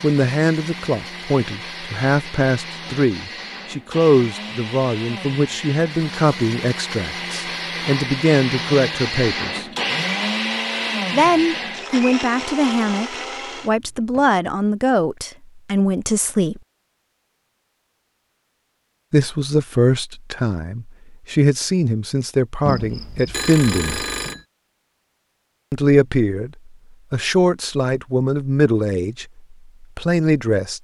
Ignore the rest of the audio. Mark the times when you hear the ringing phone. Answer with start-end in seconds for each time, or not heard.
22.6-24.4.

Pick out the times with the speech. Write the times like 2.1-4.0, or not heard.
0.0-9.7, 11.1-16.6, 19.1-24.1, 25.7-30.7.